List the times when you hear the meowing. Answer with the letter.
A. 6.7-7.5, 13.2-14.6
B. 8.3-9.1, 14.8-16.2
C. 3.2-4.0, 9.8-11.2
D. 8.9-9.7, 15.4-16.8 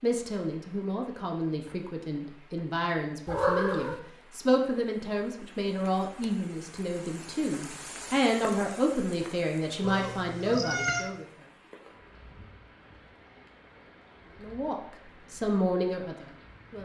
C.